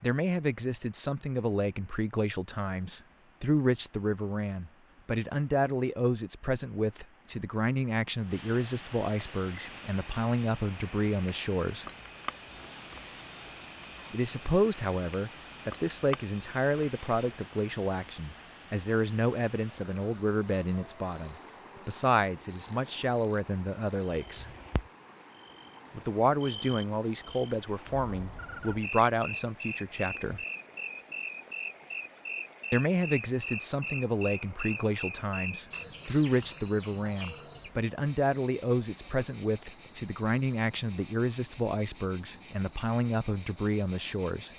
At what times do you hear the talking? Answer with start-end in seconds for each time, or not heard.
0.0-11.8, 14.1-24.4, 25.9-30.4, 32.7-44.5.